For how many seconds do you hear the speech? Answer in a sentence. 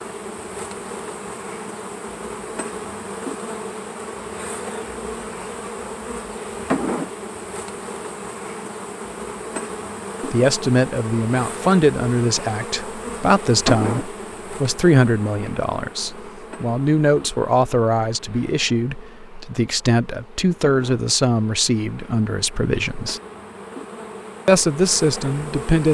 The speech can be heard for 14 seconds in total.